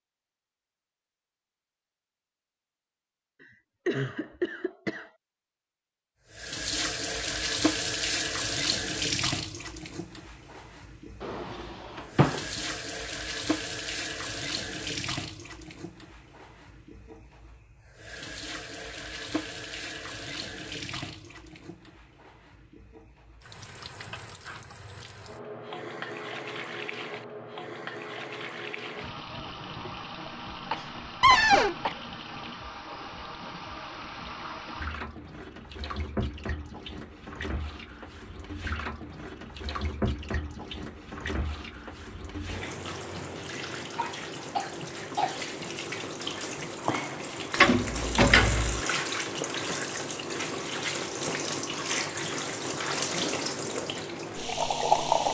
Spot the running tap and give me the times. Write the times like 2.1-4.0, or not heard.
6.3-55.3.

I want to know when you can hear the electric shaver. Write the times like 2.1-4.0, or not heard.
not heard.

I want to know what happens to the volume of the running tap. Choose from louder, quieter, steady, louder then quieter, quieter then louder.
quieter then louder.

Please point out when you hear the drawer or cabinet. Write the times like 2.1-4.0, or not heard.
11.2-12.4, 31.2-31.8, 47.6-48.8.